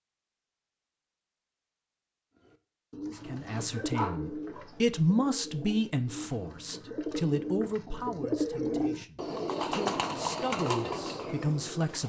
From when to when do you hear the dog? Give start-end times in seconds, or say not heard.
3.2-4.7.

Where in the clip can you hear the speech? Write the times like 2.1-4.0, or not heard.
3.2-12.0.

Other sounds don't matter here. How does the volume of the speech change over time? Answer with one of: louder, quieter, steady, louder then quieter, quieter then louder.
quieter then louder.